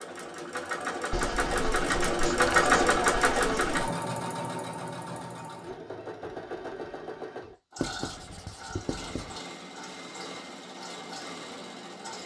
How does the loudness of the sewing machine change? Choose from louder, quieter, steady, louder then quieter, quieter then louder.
quieter.